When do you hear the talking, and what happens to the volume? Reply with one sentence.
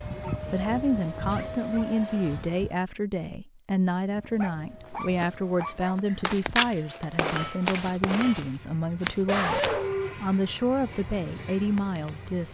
The talking can be heard from 0.5 to 12.4 s, at a steady volume.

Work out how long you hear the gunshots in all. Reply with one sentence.
The gunshots can be heard for 2 seconds in total.